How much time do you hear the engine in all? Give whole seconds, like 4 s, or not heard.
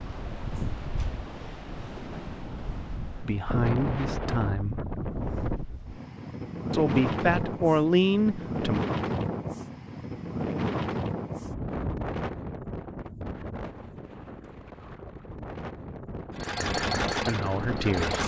2 s.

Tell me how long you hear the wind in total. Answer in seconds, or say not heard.
18 s.